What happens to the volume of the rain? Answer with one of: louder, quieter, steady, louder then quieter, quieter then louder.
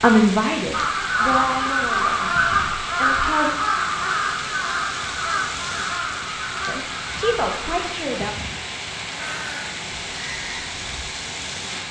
steady.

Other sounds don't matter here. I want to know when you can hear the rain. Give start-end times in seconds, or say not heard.
0.0-11.8.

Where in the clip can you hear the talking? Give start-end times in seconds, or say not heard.
0.0-3.5, 6.7-8.3.